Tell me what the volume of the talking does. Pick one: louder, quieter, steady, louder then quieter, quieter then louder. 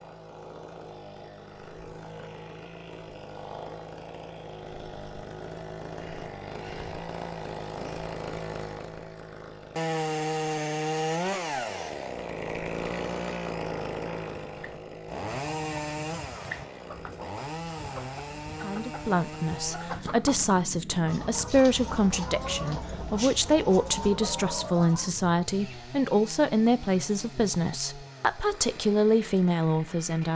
steady.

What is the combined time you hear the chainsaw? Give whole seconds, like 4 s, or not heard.
30 s.